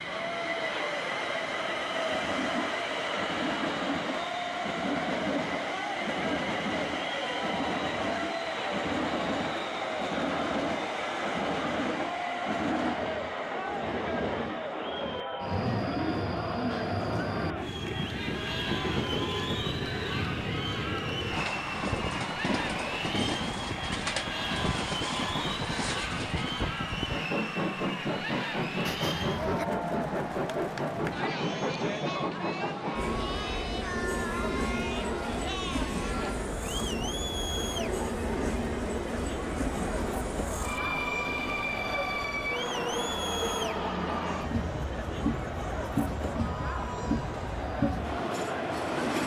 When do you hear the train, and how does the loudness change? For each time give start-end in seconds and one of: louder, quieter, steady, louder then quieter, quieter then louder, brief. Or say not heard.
0.0-49.2 steady.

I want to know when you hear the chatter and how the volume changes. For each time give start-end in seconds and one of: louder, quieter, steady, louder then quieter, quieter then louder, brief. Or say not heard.
0.0-49.2 steady.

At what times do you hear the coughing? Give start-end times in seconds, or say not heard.
28.9-29.7.